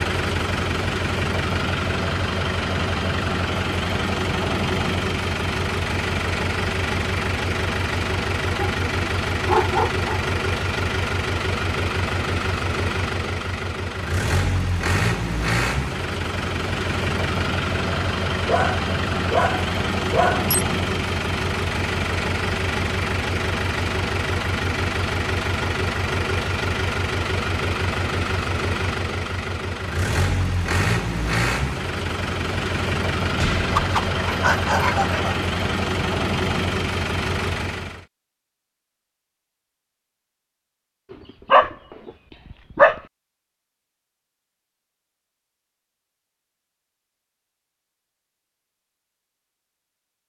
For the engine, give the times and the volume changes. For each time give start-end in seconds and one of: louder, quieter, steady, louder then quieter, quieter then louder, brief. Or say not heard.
0.0-38.0 steady.